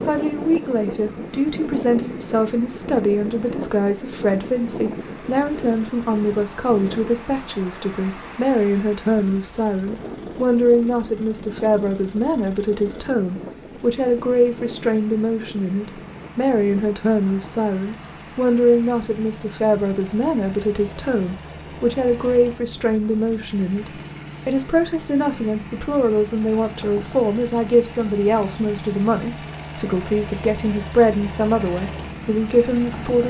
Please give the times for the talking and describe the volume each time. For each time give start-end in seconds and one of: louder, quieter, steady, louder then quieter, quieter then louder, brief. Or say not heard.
0.1-33.2 steady.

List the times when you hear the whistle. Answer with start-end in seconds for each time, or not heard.
not heard.